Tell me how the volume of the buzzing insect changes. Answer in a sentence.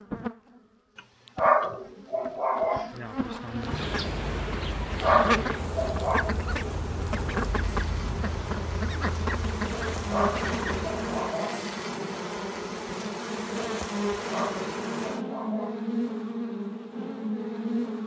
The volume of the buzzing insect goes up.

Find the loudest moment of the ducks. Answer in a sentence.
The loudest moment of the ducks is at 5 seconds.